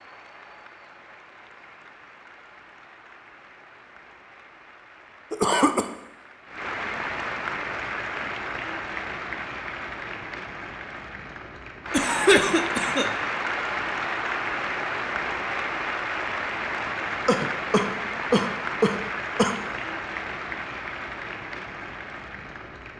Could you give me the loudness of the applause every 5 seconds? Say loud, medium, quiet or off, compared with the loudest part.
quiet, loud, loud, loud, medium.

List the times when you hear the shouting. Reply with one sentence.
The shouting can't be heard in this clip.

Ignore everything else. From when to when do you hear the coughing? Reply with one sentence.
You can hear the coughing from 5.3 to 5.8 s, from 11.9 to 13.1 s and from 16.9 to 19.6 s.